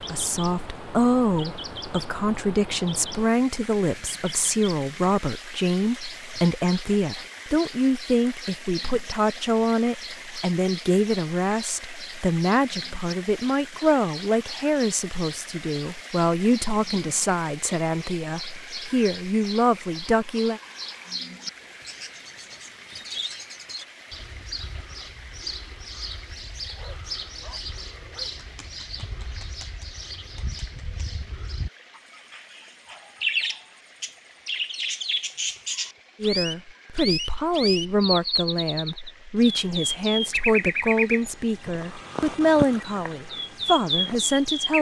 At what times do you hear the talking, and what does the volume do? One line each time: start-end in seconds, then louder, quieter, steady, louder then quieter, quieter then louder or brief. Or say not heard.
0.1-20.6 steady
36.2-44.7 steady.